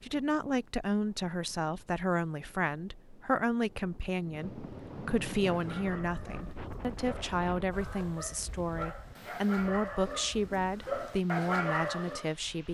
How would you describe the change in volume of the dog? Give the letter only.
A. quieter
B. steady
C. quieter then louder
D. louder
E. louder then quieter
D.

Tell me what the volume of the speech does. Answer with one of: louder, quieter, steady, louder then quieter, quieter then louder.
steady.